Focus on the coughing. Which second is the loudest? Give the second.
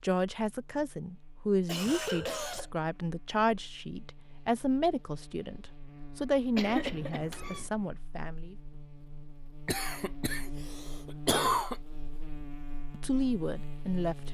11 s.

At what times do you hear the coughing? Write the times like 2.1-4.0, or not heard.
1.6-2.6, 6.5-7.7, 9.7-11.8.